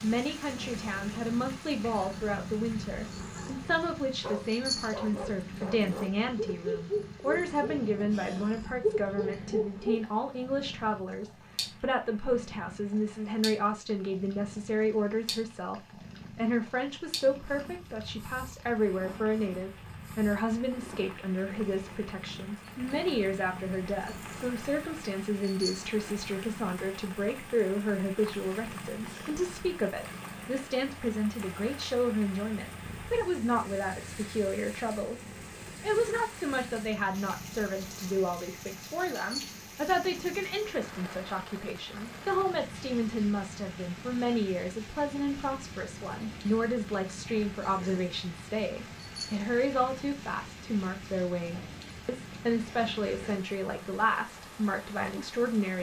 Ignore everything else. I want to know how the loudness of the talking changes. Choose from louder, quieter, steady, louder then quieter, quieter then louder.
steady.